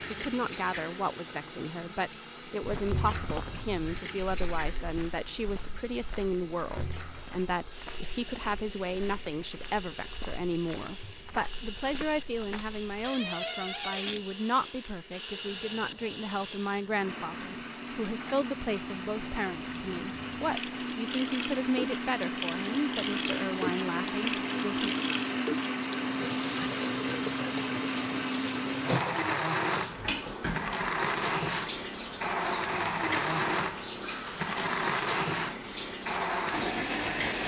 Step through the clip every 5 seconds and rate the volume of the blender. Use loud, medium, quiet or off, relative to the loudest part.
quiet, quiet, quiet, medium, loud, loud, loud, loud.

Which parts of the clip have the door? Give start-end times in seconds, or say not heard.
13.0-14.2.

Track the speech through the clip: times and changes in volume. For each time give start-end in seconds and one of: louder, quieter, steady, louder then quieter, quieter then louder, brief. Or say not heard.
0.1-24.9 steady.